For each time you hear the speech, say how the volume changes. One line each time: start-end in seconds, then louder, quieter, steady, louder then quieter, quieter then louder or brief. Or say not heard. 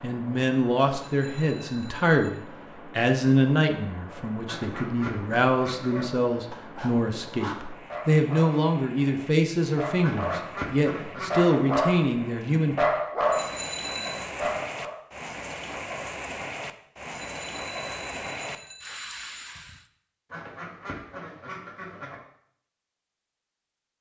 0.0-12.8 steady.